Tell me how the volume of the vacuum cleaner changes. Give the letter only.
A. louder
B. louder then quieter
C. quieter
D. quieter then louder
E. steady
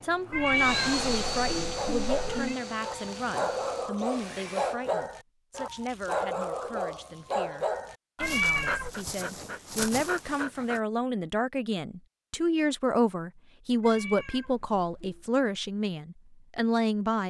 C.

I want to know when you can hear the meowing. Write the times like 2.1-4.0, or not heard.
0.3-2.5, 8.2-8.9, 13.8-15.2.